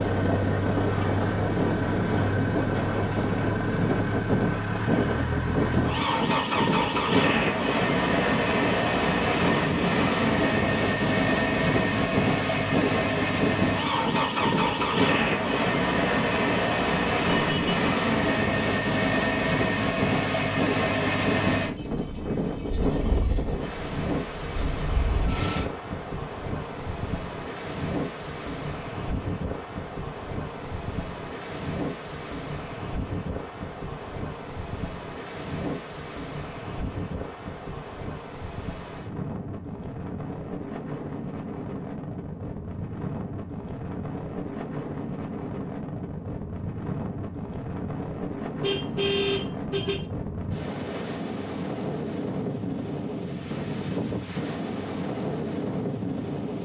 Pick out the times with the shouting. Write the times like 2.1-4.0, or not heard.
not heard.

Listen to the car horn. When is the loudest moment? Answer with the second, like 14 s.
49 s.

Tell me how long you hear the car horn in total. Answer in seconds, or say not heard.
2 s.